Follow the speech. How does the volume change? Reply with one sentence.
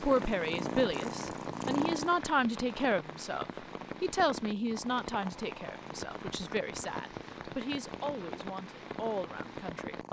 The volume of the speech goes down.